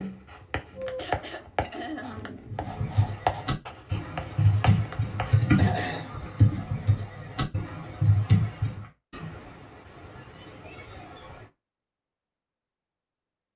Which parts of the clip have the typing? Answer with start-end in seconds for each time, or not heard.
2.5-8.8.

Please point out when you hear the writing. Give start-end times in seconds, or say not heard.
0.0-5.5.